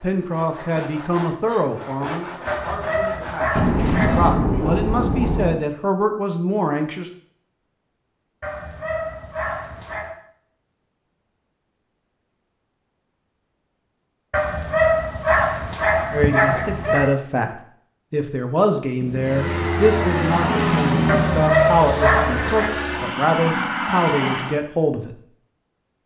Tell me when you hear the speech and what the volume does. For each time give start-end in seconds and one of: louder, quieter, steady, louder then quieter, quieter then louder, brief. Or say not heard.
0.0-7.1 quieter then louder
16.1-25.1 steady.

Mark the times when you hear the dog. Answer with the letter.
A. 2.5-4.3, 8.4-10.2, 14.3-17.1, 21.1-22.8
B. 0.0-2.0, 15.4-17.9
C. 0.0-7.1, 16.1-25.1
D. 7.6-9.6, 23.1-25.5
A.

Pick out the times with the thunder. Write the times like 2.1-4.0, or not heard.
3.5-5.5, 19.0-21.4.